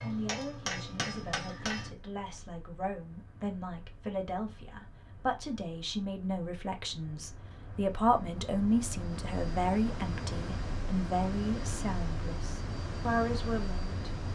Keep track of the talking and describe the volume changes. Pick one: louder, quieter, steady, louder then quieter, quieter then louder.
louder.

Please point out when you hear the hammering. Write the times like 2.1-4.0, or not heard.
0.0-1.9.